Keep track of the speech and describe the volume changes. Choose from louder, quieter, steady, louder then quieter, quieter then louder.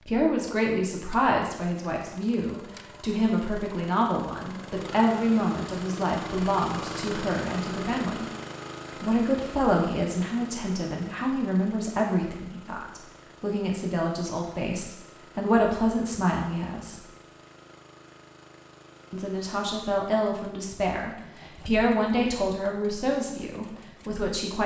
steady.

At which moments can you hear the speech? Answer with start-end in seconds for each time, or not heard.
0.1-8.2, 9.0-17.0, 19.1-24.6.